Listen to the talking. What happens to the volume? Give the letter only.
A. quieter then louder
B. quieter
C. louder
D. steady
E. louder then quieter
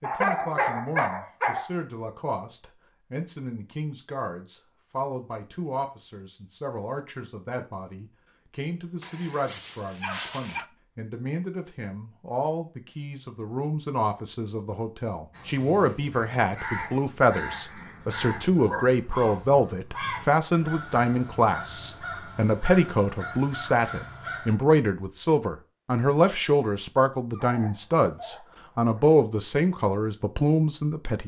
C.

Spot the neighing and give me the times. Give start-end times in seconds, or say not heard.
not heard.